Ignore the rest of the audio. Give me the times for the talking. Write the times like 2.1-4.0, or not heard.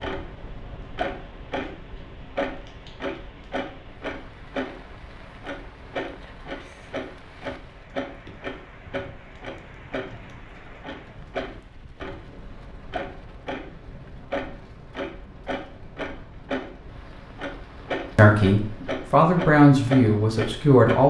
18.1-21.0.